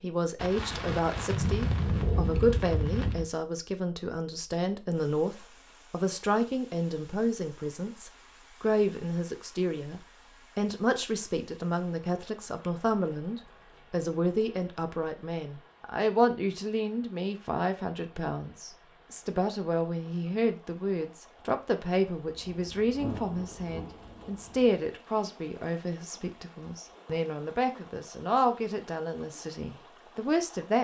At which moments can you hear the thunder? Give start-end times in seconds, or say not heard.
0.3-3.3, 22.2-24.8.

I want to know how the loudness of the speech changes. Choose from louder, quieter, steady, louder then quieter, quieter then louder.
steady.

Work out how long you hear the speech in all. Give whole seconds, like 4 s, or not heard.
31 s.